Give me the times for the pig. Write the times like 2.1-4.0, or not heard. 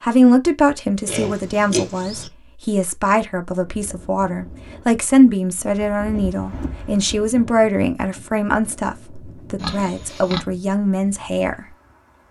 1.1-2.3, 9.6-10.4.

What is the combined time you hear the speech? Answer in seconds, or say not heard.
12 s.